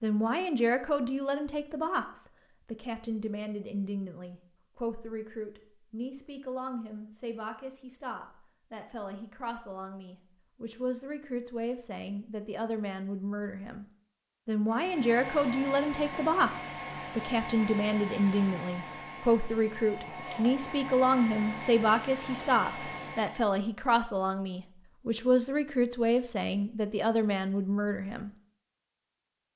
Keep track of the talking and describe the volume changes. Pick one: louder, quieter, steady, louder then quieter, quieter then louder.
quieter then louder.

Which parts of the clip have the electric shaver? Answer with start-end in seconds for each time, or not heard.
not heard.